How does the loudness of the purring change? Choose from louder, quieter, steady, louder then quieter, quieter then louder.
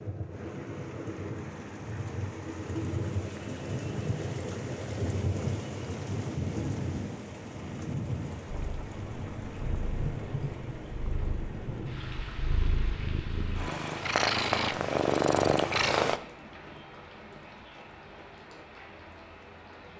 louder.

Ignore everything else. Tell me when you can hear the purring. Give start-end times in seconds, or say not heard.
8.4-16.2.